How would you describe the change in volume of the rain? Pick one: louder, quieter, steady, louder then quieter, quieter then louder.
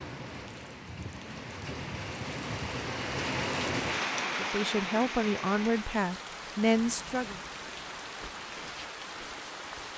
louder then quieter.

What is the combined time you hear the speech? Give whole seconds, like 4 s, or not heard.
3 s.